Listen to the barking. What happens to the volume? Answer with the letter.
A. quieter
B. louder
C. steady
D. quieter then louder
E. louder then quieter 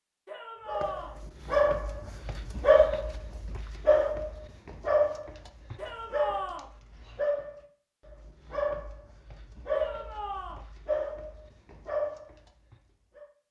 A.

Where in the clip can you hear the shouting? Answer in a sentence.
You can hear the shouting from 0.2 to 1.1 s, from 5.8 to 6.7 s and from 9.7 to 10.7 s.